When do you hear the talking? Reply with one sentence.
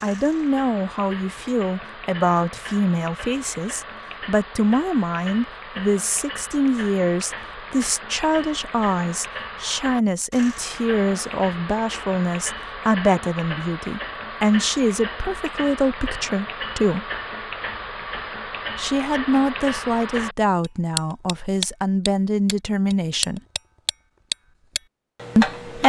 The talking can be heard from 0.0 to 17.1 s, from 18.8 to 23.4 s and from 25.4 to 25.8 s.